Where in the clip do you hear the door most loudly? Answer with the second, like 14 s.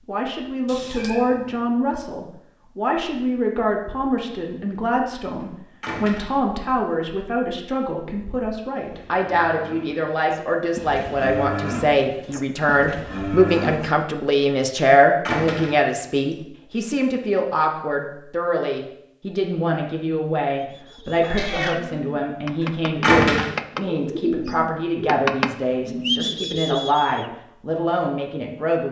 23 s.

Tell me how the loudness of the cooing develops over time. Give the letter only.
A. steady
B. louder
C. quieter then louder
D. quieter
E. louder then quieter
B.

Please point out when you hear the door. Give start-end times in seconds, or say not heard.
5.8-6.3, 15.2-15.9, 23.0-23.5.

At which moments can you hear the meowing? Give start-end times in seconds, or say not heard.
0.7-1.6, 21.2-21.8.